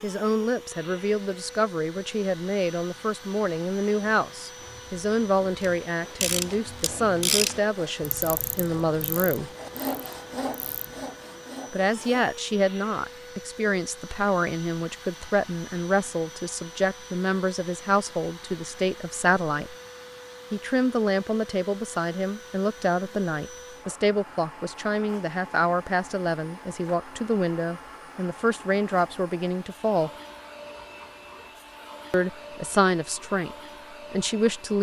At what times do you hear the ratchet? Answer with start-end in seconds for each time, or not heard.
5.6-11.1.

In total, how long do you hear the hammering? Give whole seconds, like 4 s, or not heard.
not heard.